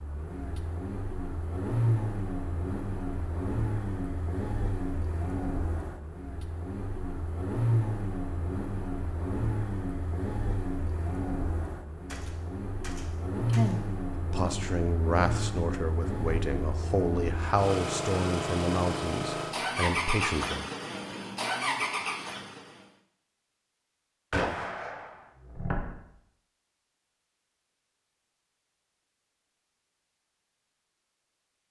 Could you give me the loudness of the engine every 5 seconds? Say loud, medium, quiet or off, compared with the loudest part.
loud, loud, loud, loud, loud, off, off.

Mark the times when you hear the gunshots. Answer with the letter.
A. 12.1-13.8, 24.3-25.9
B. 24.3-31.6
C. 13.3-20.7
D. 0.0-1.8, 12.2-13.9
A.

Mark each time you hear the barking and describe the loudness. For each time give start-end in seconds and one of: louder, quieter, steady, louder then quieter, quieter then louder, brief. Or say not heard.
not heard.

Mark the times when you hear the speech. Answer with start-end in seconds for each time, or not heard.
13.3-20.7.